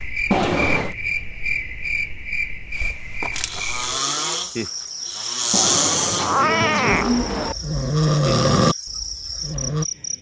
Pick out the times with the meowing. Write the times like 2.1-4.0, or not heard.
0.3-0.9, 5.5-7.5.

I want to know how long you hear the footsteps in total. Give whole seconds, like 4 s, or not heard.
not heard.